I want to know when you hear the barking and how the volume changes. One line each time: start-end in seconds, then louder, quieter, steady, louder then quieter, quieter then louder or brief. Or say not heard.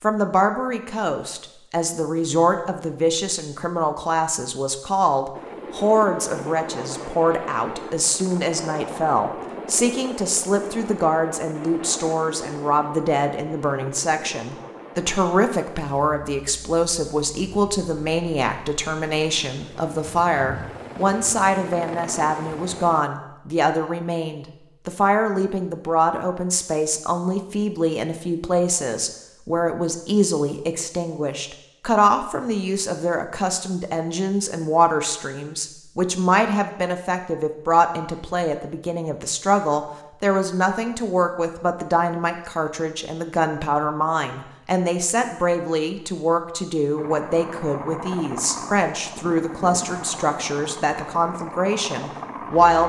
not heard.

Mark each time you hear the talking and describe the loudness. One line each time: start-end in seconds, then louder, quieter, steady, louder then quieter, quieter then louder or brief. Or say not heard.
0.0-52.8 steady.